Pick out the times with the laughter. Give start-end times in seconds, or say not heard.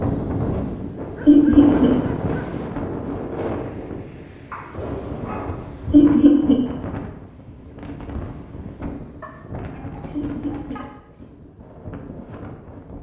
1.2-1.9, 5.9-6.6, 10.1-10.8.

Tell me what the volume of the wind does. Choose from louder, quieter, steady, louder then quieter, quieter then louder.
quieter.